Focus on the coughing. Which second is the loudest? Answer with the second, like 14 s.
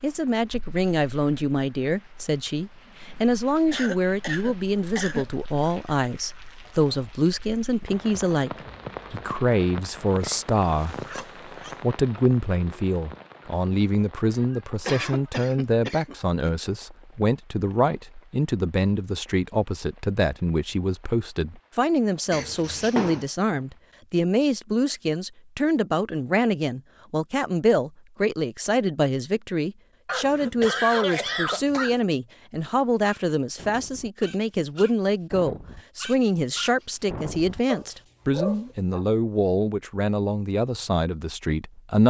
31 s.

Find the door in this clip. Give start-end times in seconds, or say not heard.
22.3-23.2.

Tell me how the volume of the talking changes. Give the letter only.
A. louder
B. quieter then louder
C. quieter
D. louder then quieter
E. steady
E.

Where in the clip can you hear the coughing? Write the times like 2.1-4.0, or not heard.
3.7-5.2, 14.2-16.5, 30.1-32.0.